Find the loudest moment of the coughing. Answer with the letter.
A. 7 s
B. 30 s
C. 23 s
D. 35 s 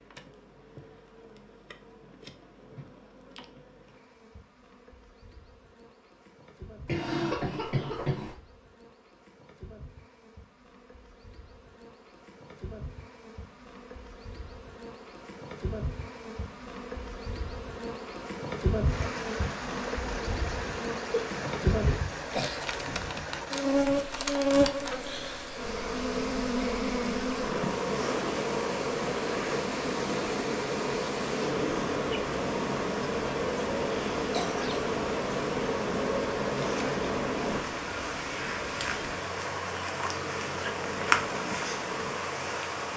A.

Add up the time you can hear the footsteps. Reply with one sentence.
You can't hear the footsteps here.